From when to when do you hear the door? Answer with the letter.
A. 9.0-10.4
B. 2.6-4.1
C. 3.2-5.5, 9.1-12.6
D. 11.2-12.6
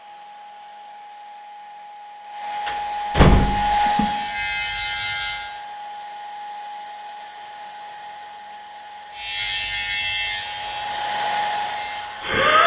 B.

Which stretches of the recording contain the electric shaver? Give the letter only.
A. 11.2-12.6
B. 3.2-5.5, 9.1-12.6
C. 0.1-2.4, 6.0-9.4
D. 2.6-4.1
B.